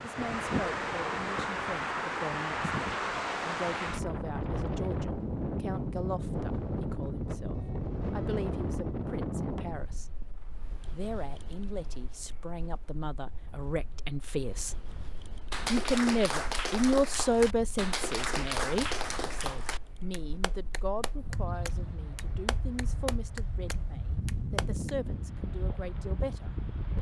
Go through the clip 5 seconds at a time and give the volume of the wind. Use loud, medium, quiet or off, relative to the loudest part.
loud, loud, quiet, quiet, medium, medium.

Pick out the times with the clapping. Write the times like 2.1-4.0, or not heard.
15.5-25.1.